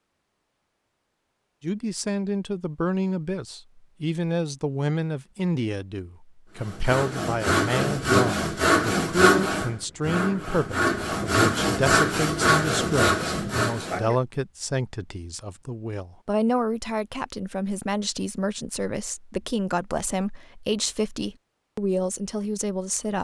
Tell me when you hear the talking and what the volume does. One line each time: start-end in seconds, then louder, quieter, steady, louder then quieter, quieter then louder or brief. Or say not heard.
1.6-23.1 steady.